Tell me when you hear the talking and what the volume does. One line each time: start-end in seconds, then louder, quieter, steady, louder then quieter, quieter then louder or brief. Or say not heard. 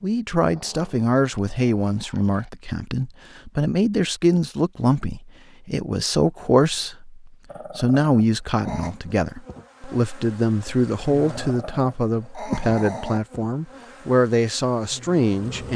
0.0-15.7 steady.